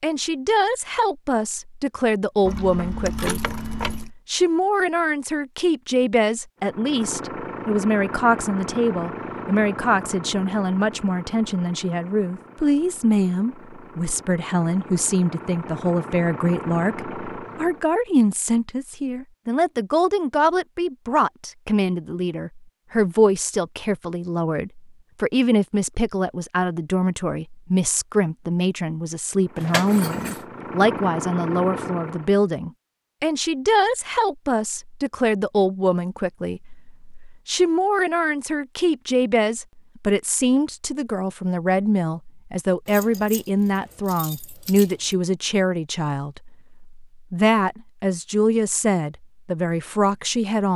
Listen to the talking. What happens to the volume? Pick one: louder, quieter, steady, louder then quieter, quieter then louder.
steady.